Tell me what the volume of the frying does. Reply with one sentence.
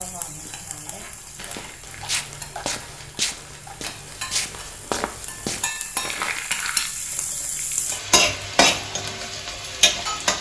The loudness of the frying goes up.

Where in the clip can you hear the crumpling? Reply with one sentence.
You can hear the crumpling from 1.4 to 3.1 s and from 6.0 to 7.8 s.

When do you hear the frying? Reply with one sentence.
You can hear the frying from 0.0 to 10.3 s.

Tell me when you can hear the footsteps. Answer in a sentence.
The footsteps can be heard from 0.2 to 5.7 s.